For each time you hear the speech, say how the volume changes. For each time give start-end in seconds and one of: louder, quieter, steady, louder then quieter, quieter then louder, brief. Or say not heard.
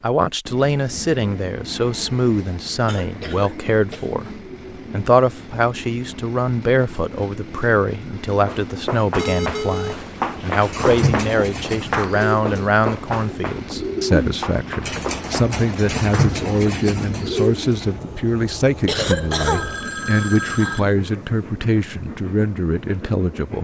0.0-23.5 steady.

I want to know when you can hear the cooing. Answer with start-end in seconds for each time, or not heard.
10.6-17.8.